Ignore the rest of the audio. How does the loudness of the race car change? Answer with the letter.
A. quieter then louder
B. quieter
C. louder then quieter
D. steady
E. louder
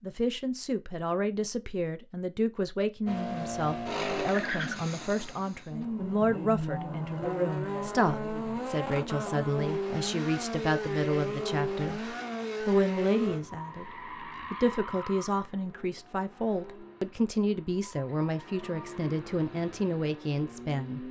B.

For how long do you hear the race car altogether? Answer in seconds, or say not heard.
18 s.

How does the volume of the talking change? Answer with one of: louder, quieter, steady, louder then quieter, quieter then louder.
steady.